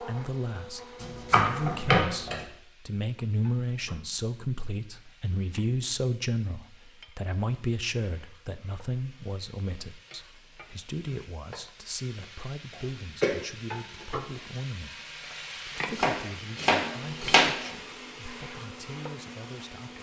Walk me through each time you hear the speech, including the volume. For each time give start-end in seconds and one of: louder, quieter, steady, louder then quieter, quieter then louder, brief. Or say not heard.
0.0-19.9 quieter.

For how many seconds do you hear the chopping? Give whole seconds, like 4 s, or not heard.
3 s.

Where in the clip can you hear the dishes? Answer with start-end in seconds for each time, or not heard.
not heard.